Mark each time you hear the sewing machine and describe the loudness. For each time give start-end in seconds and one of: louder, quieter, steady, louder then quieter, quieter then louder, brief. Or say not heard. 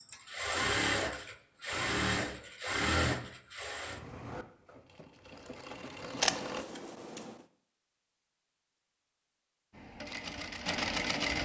0.0-6.7 quieter
9.7-11.4 brief.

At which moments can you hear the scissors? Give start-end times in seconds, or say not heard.
6.2-7.3.